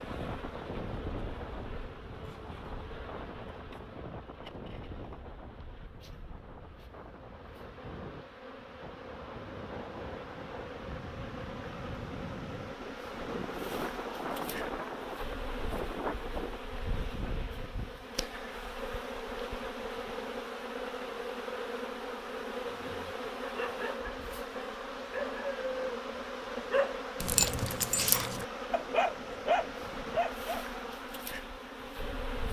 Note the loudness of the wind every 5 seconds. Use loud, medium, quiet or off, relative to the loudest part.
loud, medium, loud, loud, off, off, off.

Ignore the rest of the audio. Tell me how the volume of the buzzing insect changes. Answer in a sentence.
The volume of the buzzing insect goes up.